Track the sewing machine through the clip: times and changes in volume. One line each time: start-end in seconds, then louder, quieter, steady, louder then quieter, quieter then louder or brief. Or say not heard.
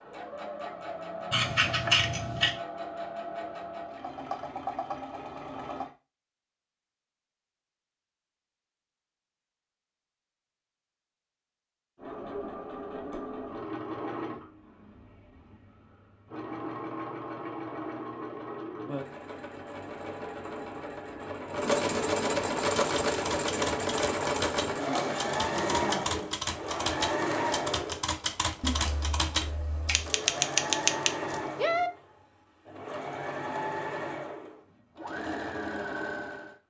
0.0-5.9 steady
11.9-36.5 louder then quieter.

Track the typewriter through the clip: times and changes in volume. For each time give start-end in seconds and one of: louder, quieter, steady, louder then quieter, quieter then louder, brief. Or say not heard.
22.8-31.9 louder.